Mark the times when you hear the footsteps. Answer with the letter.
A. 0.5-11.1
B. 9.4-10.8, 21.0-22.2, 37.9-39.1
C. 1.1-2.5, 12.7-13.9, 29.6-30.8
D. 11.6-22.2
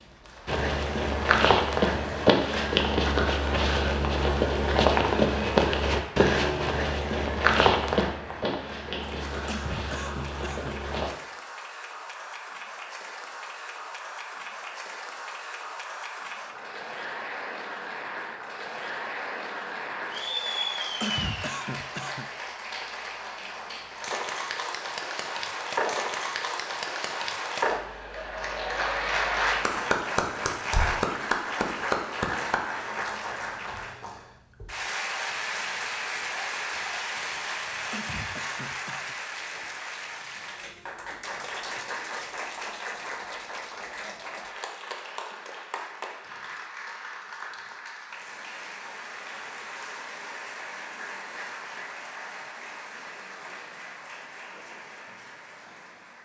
A.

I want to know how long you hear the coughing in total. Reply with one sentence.
The coughing can be heard for 4 seconds in total.